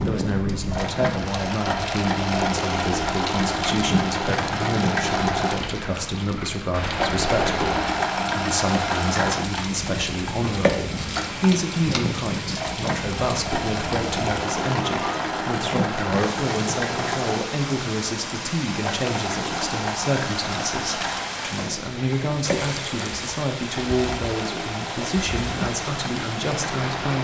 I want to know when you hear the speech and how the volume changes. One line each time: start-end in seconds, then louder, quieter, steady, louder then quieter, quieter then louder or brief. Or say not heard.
0.1-27.1 steady.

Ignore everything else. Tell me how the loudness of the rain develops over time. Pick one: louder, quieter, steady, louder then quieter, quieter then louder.
steady.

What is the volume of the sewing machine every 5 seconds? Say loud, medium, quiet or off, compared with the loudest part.
loud, loud, loud, loud, medium, medium.